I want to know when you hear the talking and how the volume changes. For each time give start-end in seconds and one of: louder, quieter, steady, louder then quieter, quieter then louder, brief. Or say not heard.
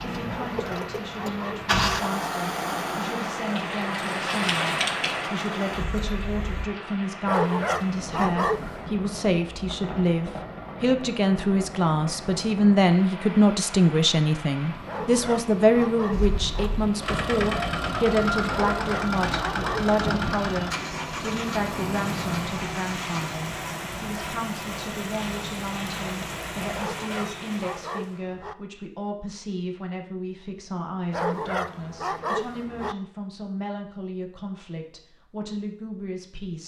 0.0-36.6 louder then quieter.